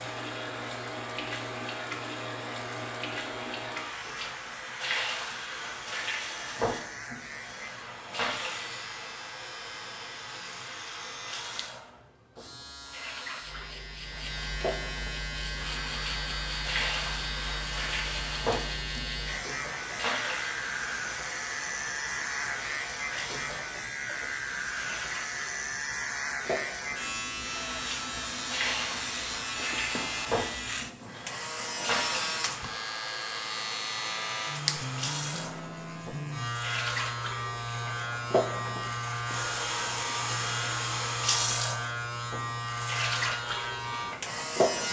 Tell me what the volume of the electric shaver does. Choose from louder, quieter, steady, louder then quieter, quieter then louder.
louder.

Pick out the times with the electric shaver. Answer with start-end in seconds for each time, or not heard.
0.0-44.8.